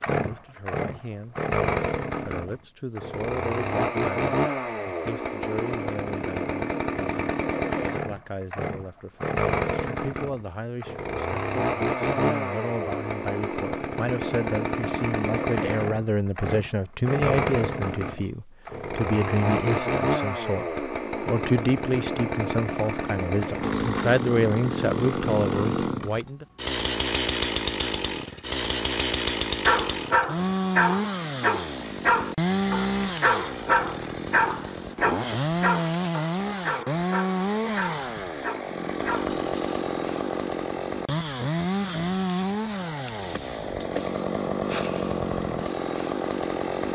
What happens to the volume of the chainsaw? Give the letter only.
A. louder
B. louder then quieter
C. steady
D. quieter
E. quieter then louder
C.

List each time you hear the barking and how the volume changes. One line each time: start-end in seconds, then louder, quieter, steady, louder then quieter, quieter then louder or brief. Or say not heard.
29.6-39.4 quieter.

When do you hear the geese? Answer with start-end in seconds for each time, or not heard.
not heard.